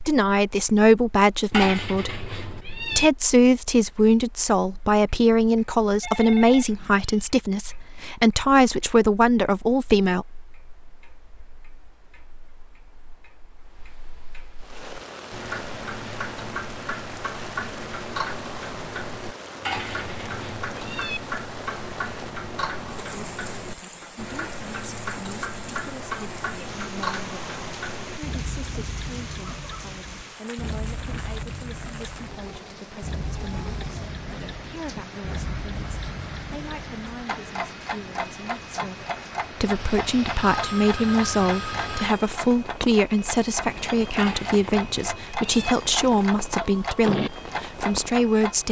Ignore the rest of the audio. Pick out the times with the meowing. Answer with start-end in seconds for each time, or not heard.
1.5-3.1, 19.6-21.2, 44.1-45.8.